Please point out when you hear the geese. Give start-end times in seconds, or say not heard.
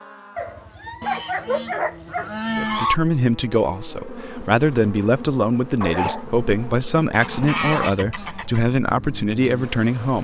1.0-3.0, 7.1-8.6.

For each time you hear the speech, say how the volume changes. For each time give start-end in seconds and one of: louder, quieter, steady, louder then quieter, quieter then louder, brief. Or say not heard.
2.5-10.1 steady.